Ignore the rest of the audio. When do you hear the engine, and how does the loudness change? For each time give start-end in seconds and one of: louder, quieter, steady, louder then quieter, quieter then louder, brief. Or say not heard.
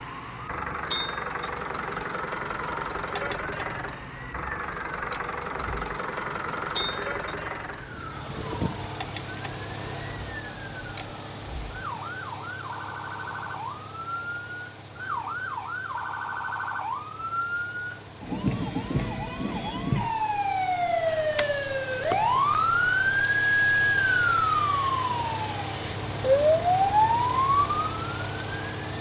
0.0-28.9 quieter then louder.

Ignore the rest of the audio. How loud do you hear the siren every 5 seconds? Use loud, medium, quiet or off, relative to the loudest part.
quiet, quiet, quiet, medium, loud, loud.